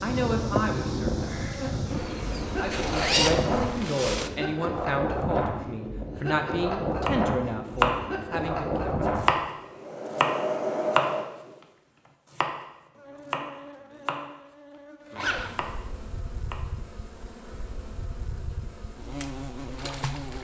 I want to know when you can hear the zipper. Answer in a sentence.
You can hear the zipper from 2.7 to 3.6 s and from 15.2 to 15.7 s.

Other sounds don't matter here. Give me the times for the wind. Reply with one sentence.
You can hear the wind from 0.0 to 11.6 s.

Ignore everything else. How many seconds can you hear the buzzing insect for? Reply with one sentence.
The buzzing insect can be heard for 13 seconds in total.